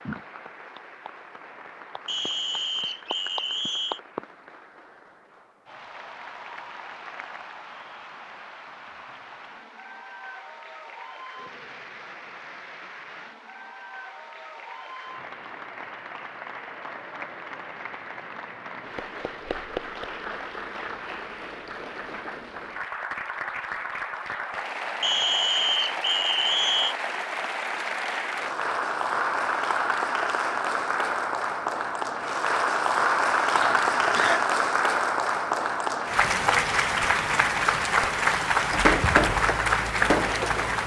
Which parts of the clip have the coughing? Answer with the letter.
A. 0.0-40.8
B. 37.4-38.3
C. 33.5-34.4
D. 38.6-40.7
C.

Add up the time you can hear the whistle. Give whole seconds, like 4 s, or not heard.
4 s.